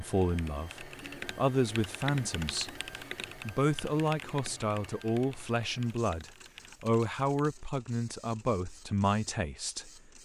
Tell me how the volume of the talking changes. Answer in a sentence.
The loudness of the talking stays about the same.